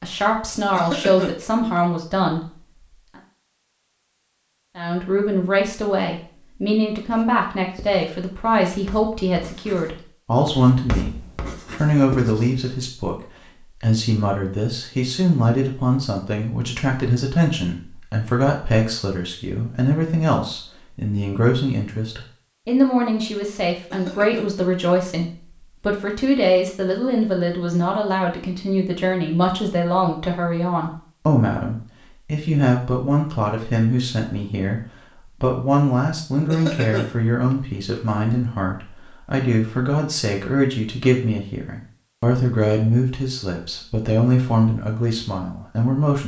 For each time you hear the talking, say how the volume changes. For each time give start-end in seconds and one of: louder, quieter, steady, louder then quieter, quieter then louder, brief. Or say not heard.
0.0-2.5 brief
4.8-46.2 steady.